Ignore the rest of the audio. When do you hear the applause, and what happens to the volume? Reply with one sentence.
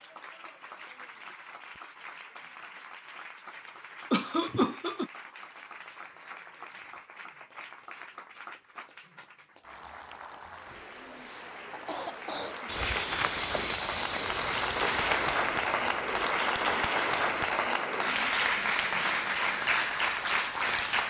The applause can be heard from 0.0 to 21.0 s, getting louder.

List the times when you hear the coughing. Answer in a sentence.
The coughing can be heard from 3.6 to 5.1 s and from 11.5 to 12.8 s.